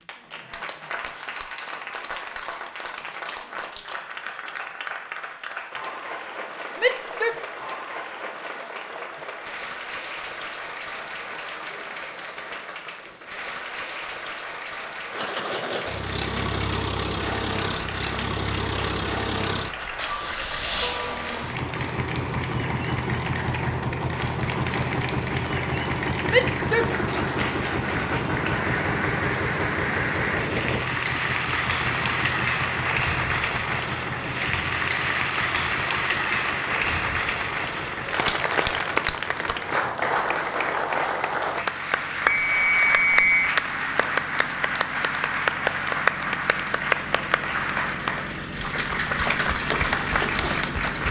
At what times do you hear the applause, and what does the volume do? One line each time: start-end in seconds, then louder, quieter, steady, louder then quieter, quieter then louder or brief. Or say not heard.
0.0-51.0 louder.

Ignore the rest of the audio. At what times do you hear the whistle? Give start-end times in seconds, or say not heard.
42.2-43.5.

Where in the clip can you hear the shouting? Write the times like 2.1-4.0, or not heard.
6.8-7.3, 26.3-26.9.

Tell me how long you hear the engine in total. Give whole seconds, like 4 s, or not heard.
36 s.